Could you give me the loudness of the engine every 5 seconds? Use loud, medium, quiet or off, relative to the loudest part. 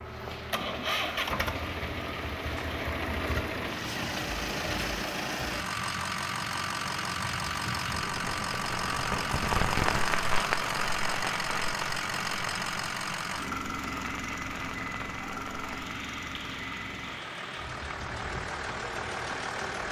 loud, loud, loud, medium.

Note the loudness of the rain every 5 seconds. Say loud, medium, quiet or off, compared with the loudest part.
medium, loud, loud, medium.